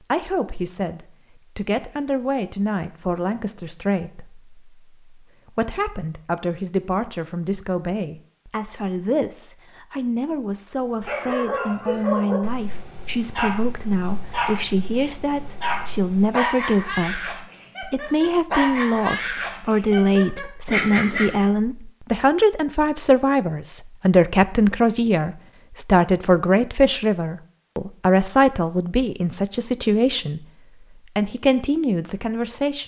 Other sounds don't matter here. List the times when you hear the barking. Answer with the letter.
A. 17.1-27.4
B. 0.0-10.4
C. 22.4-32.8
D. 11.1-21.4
D.